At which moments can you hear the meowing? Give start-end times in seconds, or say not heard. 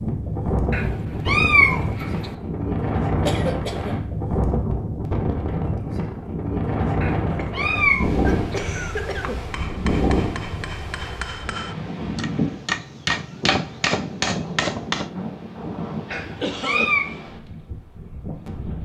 0.7-2.3, 7.0-8.3, 16.1-17.1.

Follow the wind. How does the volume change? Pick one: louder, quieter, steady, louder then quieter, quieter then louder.
quieter.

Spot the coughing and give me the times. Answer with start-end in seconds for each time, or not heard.
3.2-4.0, 7.3-9.3, 16.1-16.9.